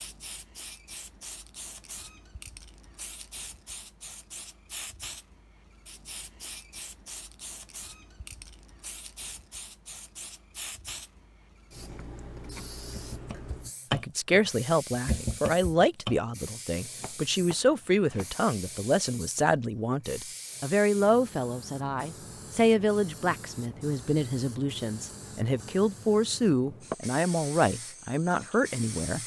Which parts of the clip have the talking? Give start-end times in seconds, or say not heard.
13.9-29.2.